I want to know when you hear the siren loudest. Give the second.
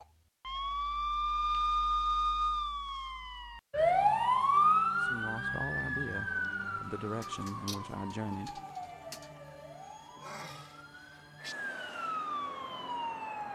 4 s.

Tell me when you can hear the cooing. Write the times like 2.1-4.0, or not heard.
not heard.